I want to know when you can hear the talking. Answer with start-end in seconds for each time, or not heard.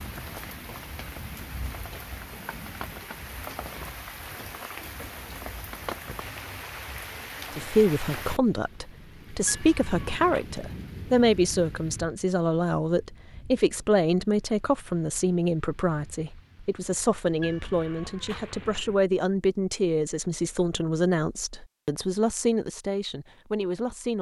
7.5-24.1.